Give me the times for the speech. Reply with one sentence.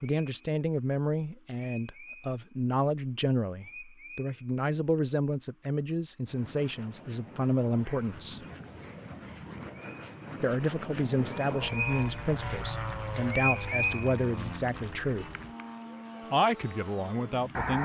You can hear the speech from 0.0 to 8.4 s, from 10.4 to 15.3 s and from 16.3 to 17.7 s.